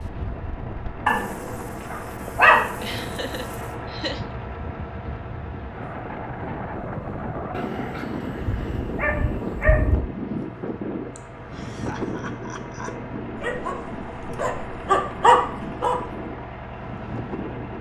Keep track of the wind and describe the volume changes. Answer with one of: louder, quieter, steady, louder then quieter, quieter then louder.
louder then quieter.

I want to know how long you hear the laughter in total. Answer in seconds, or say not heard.
4 s.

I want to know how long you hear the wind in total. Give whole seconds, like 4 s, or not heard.
18 s.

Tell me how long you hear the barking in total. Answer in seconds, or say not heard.
8 s.